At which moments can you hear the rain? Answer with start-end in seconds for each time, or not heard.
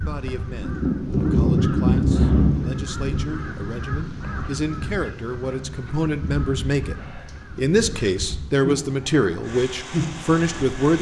0.0-10.9.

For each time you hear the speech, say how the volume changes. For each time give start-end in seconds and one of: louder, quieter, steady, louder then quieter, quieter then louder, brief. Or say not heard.
0.0-10.9 louder.